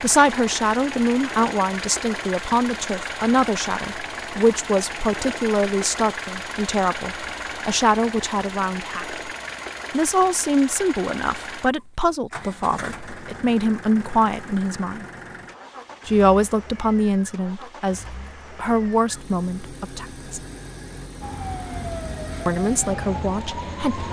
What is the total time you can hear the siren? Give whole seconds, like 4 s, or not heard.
3 s.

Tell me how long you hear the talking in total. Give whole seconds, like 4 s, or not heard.
20 s.